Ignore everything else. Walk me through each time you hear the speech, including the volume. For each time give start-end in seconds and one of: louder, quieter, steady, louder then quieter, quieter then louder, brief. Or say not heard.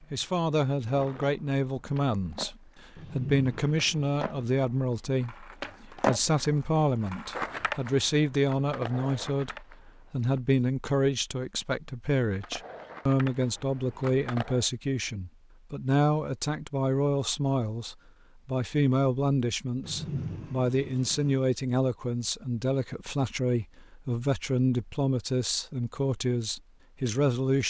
0.0-27.6 steady.